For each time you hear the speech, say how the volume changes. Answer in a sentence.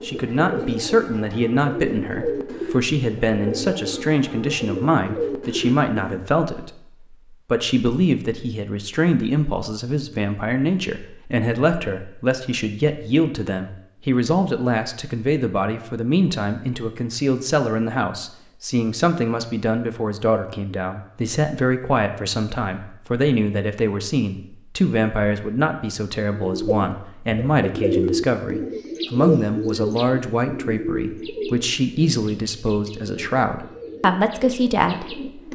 The speech can be heard from 0.0 to 35.5 s, at a steady volume.